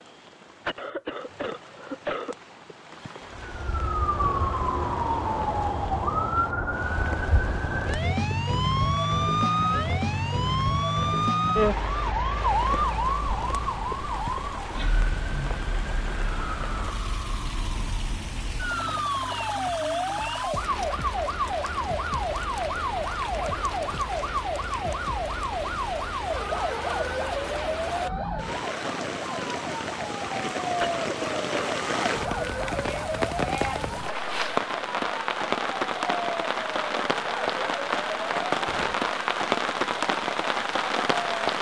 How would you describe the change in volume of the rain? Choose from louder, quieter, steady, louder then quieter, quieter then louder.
louder.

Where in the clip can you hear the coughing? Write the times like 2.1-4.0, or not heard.
0.7-2.4, 30.8-31.8.